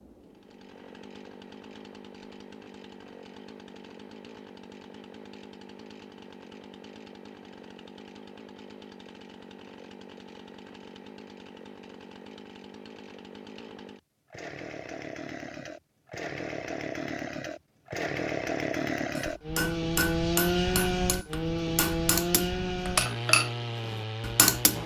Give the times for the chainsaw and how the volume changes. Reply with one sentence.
You can hear the chainsaw from 0.0 to 24.8 s, getting louder.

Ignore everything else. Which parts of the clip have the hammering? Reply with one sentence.
The hammering can be heard from 19.1 to 24.8 s.